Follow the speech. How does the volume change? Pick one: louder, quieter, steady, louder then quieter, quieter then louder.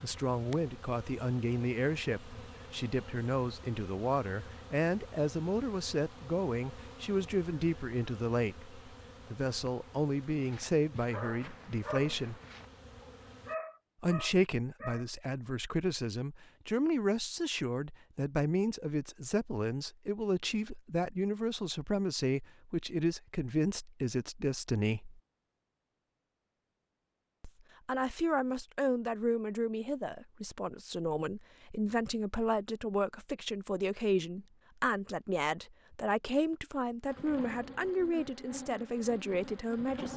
steady.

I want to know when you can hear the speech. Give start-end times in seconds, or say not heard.
0.0-12.4, 14.0-25.2, 27.4-40.1.